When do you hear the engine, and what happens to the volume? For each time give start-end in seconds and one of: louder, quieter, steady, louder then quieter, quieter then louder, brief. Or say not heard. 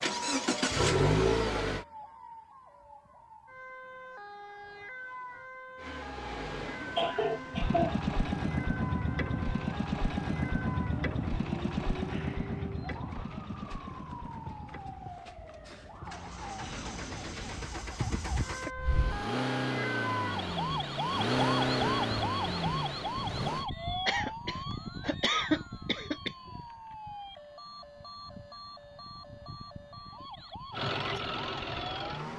0.0-1.9 brief
5.8-23.6 quieter then louder
30.7-32.3 brief.